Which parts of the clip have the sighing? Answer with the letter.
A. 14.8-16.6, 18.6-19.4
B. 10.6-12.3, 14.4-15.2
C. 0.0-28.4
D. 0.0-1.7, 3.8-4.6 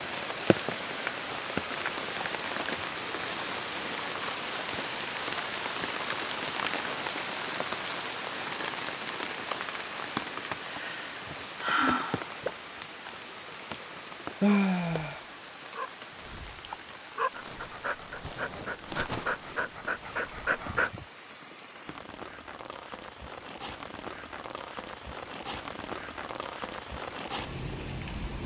B.